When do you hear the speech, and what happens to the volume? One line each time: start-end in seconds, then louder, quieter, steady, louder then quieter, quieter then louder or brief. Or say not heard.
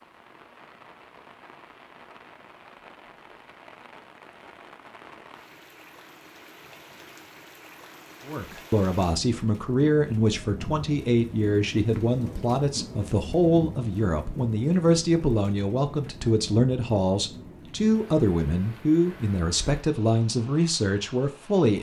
8.2-21.7 steady.